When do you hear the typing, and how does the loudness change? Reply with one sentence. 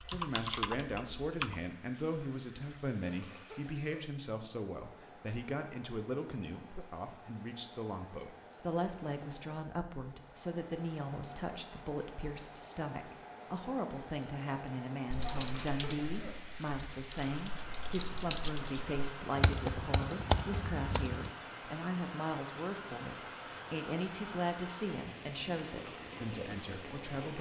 You can hear the typing briefly from 0.0 to 1.6 s; and from 15.1 to 21.3 s, getting quieter then louder.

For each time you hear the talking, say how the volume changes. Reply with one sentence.
The talking can be heard from 0.0 to 27.3 s, at a steady volume.